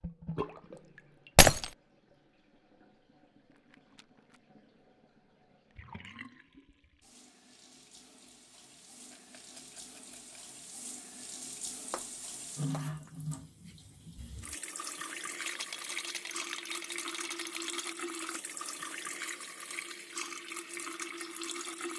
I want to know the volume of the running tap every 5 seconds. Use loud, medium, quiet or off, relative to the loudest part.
medium, quiet, loud, loud, loud.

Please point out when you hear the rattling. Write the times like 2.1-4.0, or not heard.
3.5-4.4, 9.1-10.6, 15.4-17.9.